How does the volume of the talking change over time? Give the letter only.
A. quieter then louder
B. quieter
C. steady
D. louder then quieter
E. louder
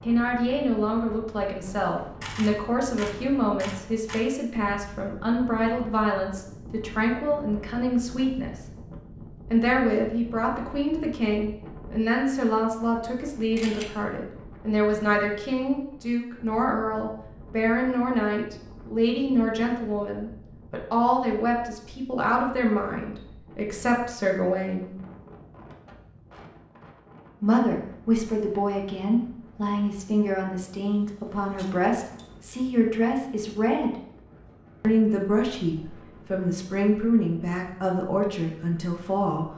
C.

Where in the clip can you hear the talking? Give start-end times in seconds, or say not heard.
0.0-8.7, 9.5-24.9, 27.4-34.0, 34.8-39.5.